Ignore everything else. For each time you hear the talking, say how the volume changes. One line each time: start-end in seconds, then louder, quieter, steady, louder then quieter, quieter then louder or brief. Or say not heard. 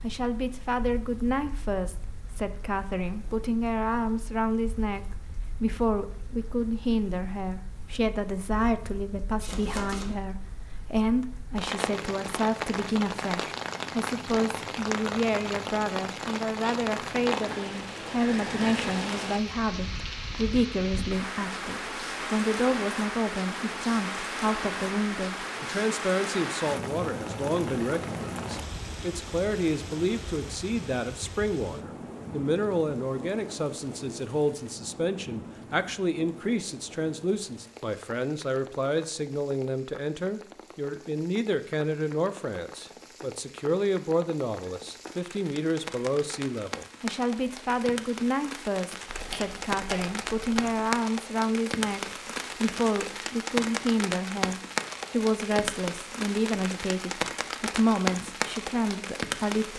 0.0-59.7 steady.